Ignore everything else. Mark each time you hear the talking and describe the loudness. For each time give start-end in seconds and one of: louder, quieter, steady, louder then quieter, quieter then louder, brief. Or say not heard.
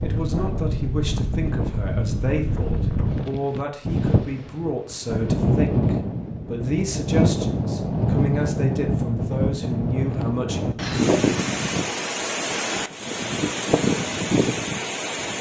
0.0-10.8 steady.